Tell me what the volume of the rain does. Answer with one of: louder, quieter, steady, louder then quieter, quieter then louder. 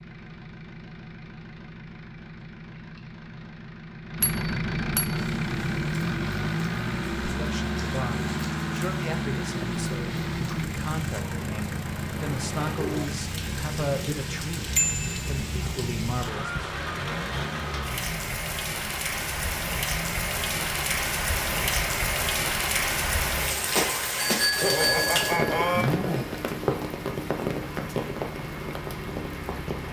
louder.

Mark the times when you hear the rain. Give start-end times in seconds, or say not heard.
5.1-29.8.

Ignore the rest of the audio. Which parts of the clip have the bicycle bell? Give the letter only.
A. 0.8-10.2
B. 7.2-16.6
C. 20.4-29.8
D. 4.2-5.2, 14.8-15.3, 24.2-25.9
D.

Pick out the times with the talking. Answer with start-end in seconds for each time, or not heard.
7.2-16.6.